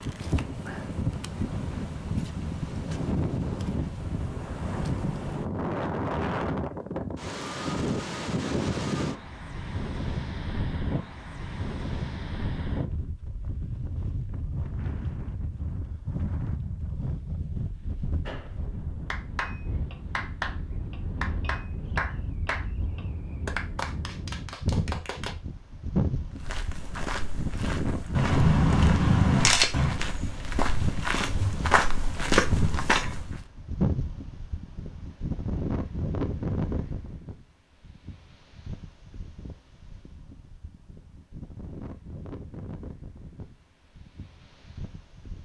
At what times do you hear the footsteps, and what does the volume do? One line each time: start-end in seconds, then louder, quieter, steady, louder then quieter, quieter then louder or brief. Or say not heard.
26.4-33.4 louder.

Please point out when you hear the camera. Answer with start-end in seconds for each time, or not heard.
28.1-30.0.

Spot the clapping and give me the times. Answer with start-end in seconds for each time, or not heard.
18.2-25.4.